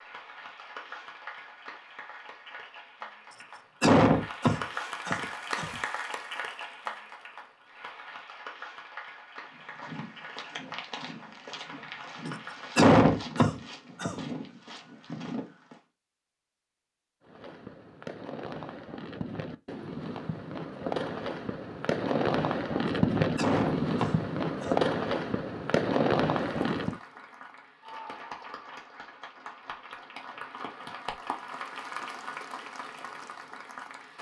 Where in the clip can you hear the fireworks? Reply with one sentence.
The fireworks can be heard from 17.2 to 27.0 s.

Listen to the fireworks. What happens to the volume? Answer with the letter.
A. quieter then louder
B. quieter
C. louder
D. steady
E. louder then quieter
C.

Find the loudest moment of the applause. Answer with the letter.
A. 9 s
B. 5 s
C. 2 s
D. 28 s
B.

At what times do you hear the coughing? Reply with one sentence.
The coughing can be heard from 3.3 to 5.8 s, from 12.2 to 14.2 s and from 23.4 to 24.8 s.